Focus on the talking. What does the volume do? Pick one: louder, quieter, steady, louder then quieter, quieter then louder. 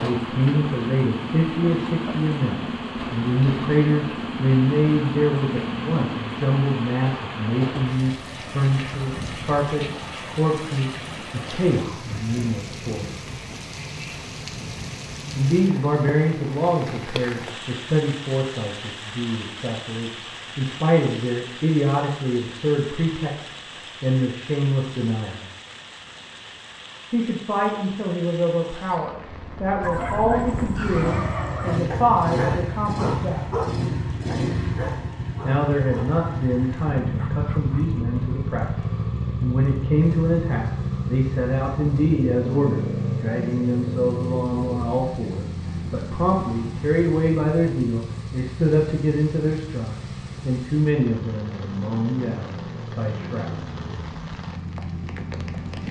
steady.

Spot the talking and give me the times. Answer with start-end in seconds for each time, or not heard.
0.0-13.2, 15.3-25.4, 27.1-33.5, 35.4-53.6.